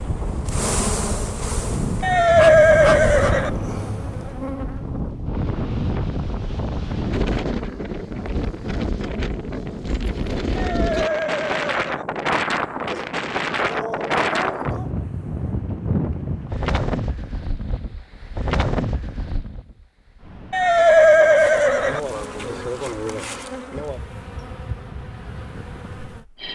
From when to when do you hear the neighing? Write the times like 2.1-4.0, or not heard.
2.0-3.5, 10.6-12.1, 20.5-22.0.